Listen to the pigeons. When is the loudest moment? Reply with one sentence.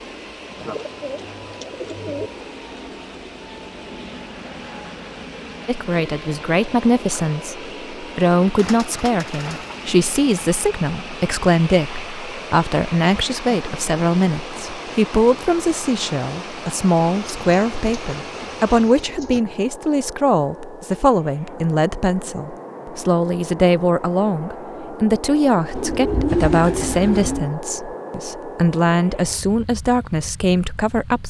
The volume of the pigeons peaks at 26 seconds.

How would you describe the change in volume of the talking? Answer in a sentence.
The loudness of the talking stays about the same.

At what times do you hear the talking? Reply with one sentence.
The talking can be heard from 5.7 to 31.2 s.